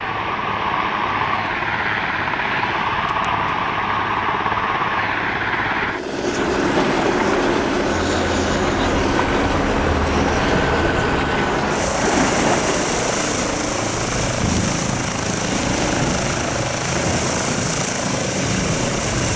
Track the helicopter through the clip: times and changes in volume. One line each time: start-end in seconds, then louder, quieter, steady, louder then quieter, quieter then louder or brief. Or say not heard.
0.0-19.3 steady.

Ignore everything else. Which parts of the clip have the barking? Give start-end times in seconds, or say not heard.
not heard.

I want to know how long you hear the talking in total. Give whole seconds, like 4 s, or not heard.
not heard.